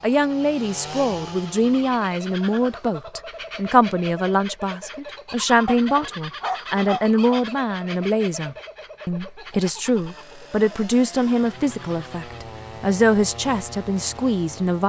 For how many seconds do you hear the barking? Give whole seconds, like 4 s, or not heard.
2 s.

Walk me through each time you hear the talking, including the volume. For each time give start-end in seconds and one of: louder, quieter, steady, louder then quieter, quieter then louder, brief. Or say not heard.
0.0-14.8 steady.